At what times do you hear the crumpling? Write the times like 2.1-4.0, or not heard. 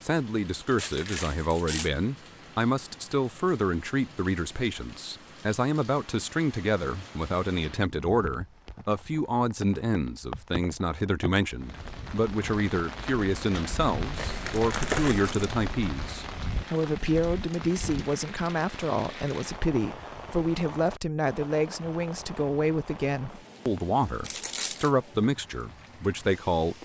0.8-1.9, 14.2-15.6, 24.2-24.9.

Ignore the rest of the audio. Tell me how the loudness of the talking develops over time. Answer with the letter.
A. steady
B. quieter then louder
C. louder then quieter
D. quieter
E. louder
A.